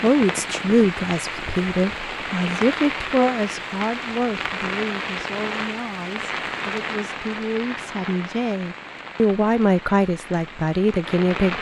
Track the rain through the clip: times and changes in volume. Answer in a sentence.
You can hear the rain from 0.0 to 11.5 s, getting quieter.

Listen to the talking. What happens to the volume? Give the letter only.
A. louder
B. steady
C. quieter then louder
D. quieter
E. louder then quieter
C.